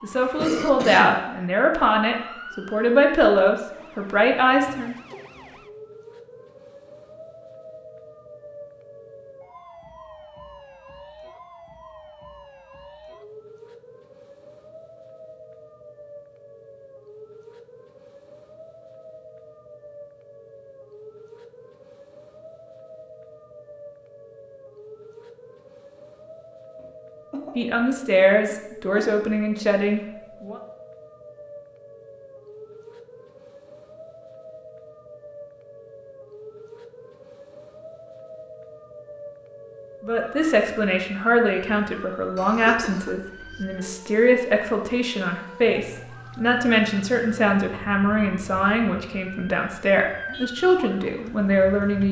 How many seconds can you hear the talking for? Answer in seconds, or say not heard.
20 s.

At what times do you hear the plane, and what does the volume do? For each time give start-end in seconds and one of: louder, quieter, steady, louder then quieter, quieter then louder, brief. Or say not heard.
not heard.